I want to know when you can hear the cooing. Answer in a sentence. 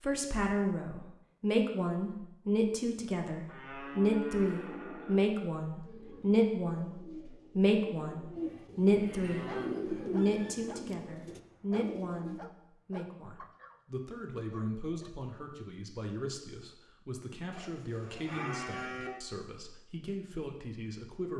The cooing can be heard from 5.7 to 12.4 s.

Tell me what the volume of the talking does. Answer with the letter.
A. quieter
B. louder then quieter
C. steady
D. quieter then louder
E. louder
A.